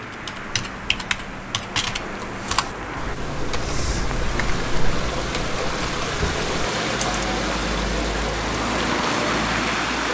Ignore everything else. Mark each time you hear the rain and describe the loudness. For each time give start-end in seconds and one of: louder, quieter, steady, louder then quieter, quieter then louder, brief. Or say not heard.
0.0-10.0 louder.